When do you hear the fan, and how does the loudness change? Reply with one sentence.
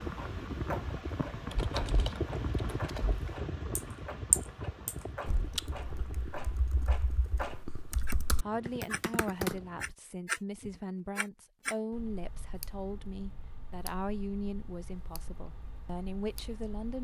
You can hear the fan from 0.0 to 9.9 s, getting quieter.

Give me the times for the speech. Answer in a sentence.
The speech can be heard from 8.4 to 16.9 s.